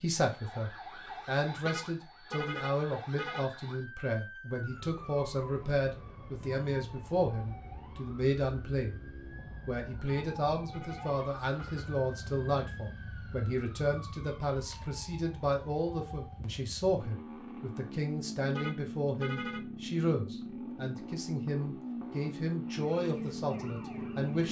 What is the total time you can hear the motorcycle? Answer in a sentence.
You can hear the motorcycle for 20 seconds altogether.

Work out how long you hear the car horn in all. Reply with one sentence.
The car horn can be heard for 5 seconds in total.